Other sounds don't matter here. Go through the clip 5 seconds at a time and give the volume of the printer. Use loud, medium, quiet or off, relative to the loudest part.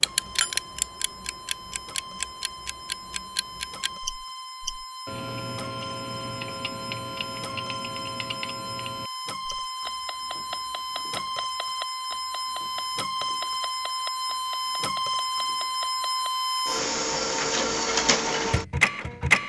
quiet, medium, medium, loud.